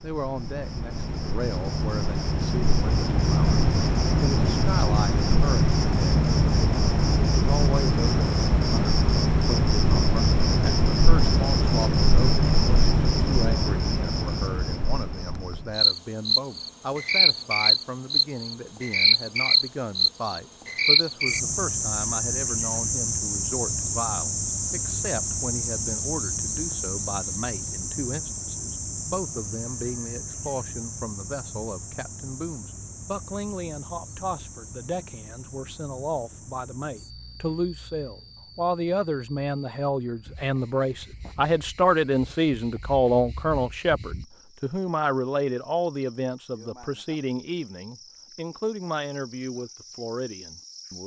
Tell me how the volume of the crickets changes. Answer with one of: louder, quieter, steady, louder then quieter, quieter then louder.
quieter.